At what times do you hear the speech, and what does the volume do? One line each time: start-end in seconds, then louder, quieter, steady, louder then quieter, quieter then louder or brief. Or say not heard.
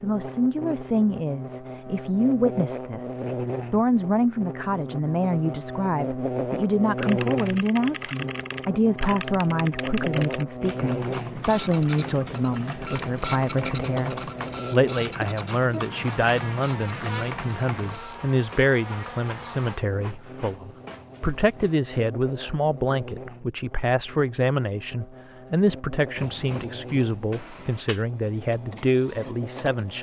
0.0-29.9 steady.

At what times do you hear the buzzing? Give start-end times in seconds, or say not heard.
0.0-29.9.